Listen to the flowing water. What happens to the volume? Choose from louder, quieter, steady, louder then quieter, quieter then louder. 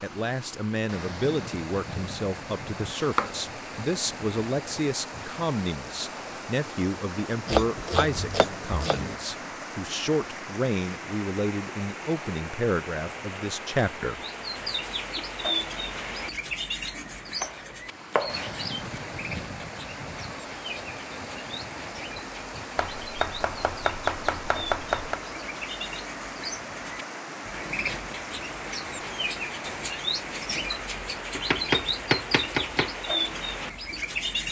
steady.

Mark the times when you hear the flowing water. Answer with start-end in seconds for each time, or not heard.
0.0-34.4.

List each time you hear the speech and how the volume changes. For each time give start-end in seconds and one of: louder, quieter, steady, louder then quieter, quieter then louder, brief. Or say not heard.
0.0-14.2 steady.